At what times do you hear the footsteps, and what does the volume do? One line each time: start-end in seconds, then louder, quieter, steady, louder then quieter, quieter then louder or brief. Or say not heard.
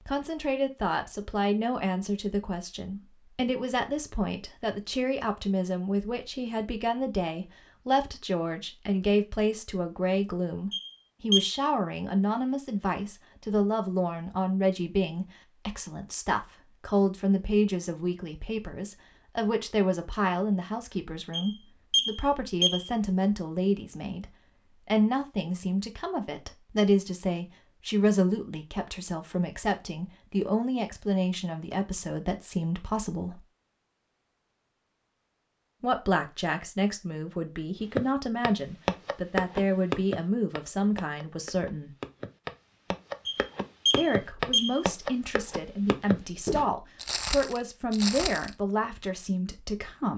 37.8-48.5 quieter then louder.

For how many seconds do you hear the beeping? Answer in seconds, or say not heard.
4 s.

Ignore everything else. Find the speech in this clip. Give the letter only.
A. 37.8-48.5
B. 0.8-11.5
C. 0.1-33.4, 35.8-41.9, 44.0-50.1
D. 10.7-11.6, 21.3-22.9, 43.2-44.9
C.